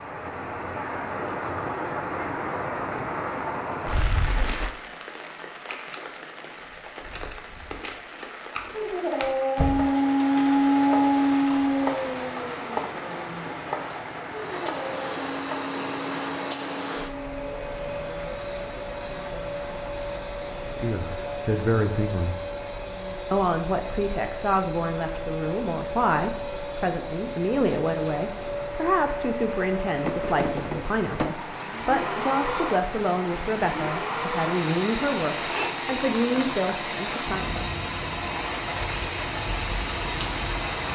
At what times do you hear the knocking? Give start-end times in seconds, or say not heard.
30.0-31.3.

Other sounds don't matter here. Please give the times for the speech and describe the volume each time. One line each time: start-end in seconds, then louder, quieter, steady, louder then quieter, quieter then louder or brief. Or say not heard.
20.8-22.4 brief
23.3-37.5 steady.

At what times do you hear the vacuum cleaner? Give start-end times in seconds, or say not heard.
14.2-40.9.